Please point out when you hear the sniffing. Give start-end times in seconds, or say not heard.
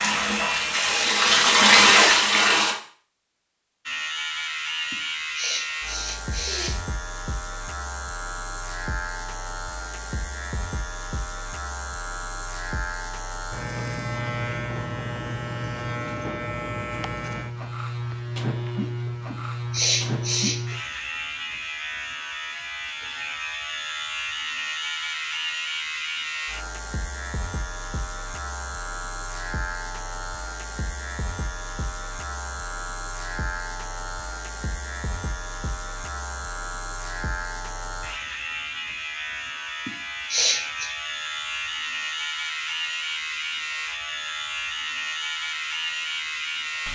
4.9-6.8, 19.3-20.8, 39.9-40.9.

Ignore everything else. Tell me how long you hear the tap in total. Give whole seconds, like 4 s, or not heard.
3 s.